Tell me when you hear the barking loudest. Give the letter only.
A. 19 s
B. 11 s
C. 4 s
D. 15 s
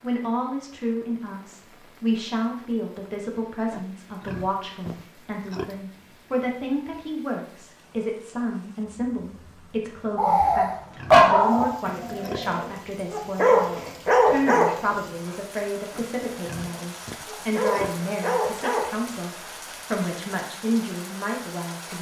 B.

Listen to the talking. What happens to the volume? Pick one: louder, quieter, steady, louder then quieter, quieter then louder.
steady.